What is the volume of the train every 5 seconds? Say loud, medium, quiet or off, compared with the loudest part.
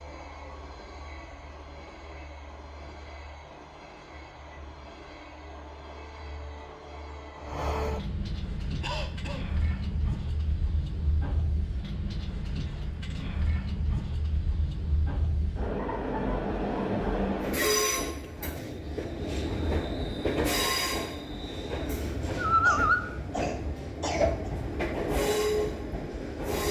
quiet, medium, medium, loud, loud, loud.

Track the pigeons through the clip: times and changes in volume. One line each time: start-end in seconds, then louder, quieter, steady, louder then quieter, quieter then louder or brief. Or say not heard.
not heard.